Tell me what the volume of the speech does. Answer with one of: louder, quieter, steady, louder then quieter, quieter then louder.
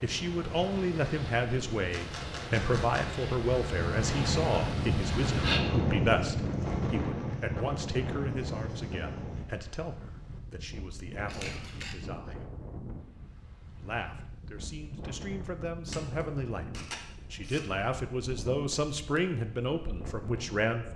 quieter then louder.